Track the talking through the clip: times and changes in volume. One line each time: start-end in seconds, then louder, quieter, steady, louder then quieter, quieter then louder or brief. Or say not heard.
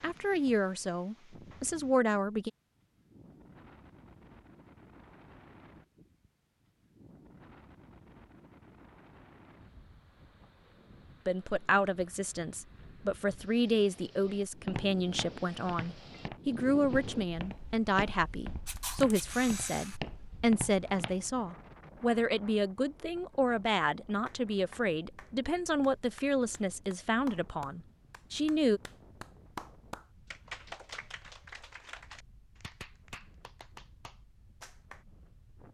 0.0-2.5 brief
11.2-28.8 steady.